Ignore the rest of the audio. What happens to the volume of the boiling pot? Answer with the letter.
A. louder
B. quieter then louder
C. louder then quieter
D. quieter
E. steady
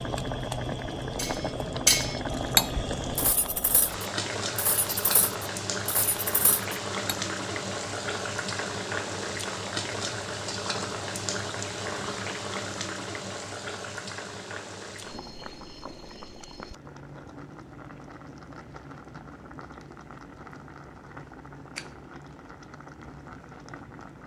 D.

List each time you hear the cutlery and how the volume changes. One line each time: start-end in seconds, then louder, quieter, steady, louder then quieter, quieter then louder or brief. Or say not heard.
1.1-7.2 quieter.